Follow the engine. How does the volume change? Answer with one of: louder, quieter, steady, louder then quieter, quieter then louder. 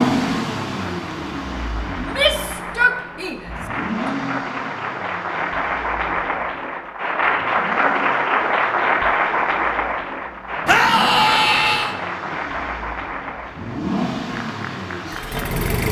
quieter then louder.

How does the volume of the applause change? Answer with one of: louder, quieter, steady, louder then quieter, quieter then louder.
louder then quieter.